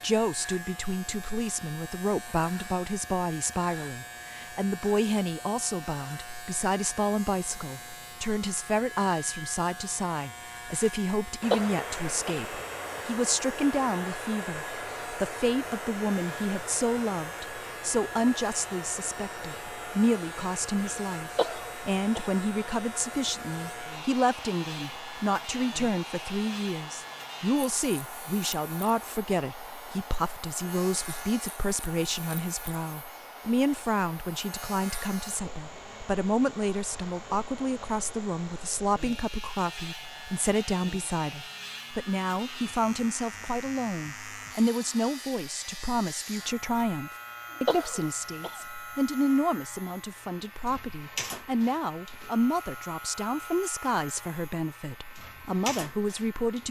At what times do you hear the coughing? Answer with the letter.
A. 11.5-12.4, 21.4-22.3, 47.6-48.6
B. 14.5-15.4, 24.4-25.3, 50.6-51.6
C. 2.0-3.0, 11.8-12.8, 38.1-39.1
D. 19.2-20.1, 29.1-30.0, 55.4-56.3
A.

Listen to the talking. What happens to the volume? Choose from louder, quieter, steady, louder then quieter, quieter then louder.
steady.